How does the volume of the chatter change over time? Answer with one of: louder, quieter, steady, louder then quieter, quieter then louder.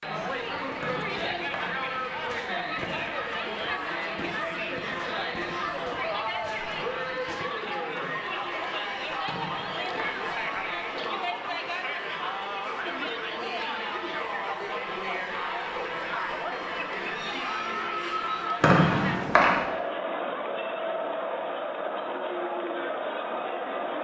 steady.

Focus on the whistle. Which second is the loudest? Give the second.
19 s.